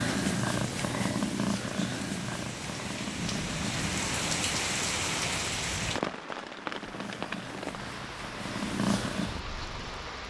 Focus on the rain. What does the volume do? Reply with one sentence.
The volume of the rain goes up, then down.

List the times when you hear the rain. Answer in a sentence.
You can hear the rain from 0.0 to 10.2 s.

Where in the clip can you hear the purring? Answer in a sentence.
The purring can be heard from 0.0 to 4.8 s and from 6.7 to 10.2 s.